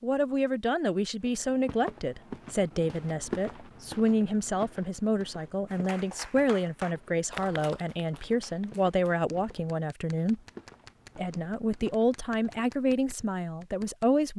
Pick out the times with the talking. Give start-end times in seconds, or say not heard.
0.0-10.4, 11.2-14.3.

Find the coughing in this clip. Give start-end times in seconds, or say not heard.
not heard.